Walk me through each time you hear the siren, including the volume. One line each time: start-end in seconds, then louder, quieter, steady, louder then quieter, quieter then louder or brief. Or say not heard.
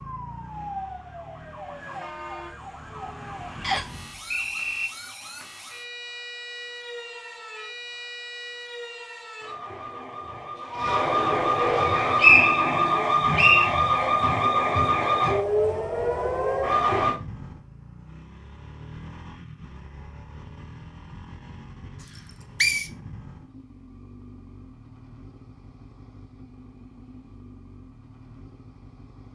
0.0-17.2 louder.